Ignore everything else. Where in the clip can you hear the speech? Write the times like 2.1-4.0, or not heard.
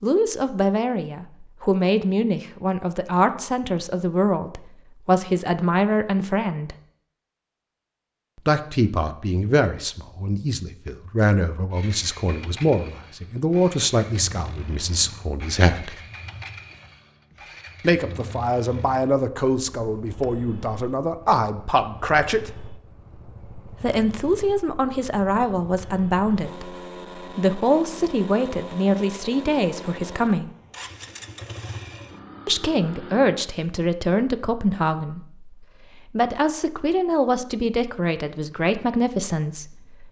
0.0-6.8, 8.3-15.9, 17.8-22.5, 23.7-30.5, 32.5-40.0.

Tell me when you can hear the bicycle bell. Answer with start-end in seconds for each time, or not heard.
not heard.